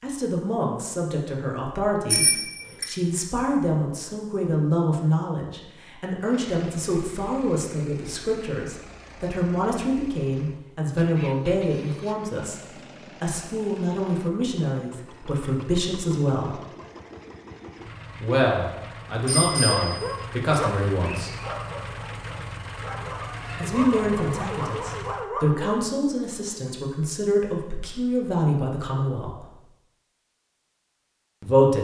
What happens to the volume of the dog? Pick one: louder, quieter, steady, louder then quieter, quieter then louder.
quieter then louder.